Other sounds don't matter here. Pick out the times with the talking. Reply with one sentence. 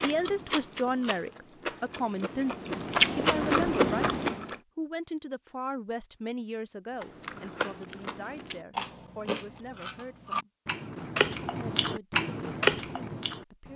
You can hear the talking from 0.0 to 10.5 s and from 11.6 to 13.7 s.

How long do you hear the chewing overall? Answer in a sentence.
You can hear the chewing for 11 seconds altogether.